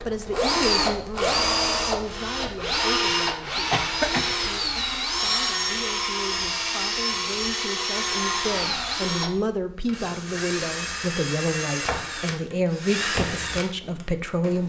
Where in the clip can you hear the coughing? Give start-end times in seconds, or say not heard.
3.4-4.3.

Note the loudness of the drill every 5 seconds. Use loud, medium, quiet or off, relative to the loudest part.
loud, loud, medium.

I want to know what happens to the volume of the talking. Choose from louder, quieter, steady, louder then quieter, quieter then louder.
quieter then louder.